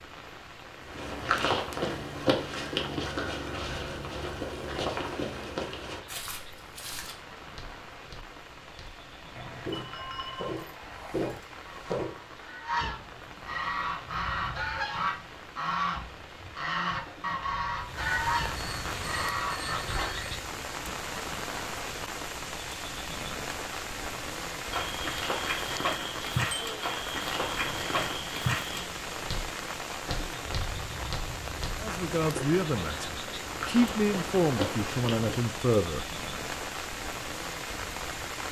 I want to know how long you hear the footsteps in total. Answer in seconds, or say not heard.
22 s.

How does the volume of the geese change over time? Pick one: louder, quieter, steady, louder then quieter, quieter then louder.
louder.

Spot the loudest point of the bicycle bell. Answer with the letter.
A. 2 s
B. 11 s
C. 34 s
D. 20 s
D.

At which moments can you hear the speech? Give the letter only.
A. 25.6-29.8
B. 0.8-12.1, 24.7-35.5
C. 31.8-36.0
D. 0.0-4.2
C.